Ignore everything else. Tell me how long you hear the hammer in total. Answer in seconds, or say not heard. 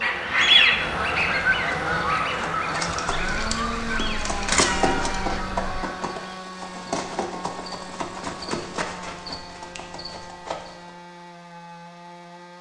not heard.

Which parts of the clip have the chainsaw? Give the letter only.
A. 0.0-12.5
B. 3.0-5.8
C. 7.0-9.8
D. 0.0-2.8
A.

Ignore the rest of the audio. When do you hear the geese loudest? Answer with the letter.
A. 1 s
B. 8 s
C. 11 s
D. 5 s
A.